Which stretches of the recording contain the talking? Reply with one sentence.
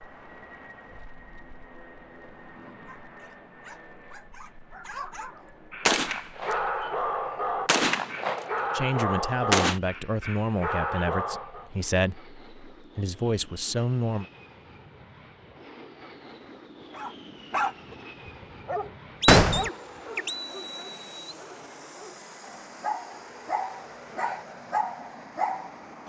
You can hear the talking from 8.7 to 14.2 s.